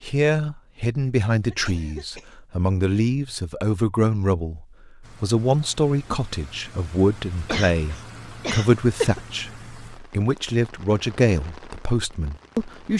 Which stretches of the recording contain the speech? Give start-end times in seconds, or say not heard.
0.0-12.9.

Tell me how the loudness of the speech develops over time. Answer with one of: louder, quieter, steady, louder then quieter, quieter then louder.
steady.